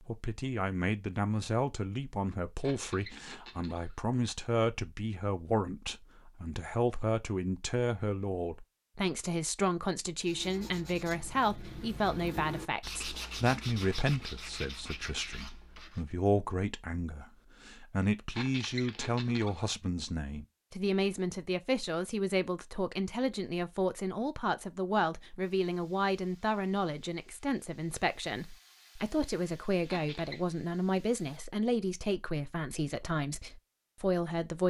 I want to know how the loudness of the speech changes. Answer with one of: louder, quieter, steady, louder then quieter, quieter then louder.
steady.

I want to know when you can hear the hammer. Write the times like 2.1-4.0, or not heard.
not heard.